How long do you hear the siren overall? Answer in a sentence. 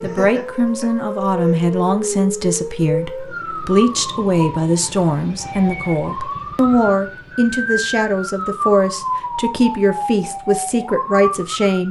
You can hear the siren for 12 seconds altogether.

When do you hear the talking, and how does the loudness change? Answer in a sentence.
You can hear the talking from 0.0 to 11.8 s, at a steady volume.